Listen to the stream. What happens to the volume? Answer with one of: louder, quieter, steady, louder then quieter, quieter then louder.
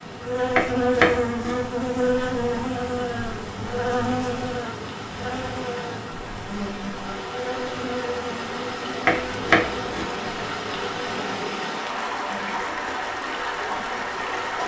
louder.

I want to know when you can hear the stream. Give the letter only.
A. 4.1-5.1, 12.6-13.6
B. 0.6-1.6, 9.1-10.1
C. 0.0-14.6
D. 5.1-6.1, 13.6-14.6
C.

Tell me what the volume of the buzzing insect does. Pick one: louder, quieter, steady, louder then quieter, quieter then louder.
quieter.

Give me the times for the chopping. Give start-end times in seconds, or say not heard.
0.6-1.6, 9.1-10.1.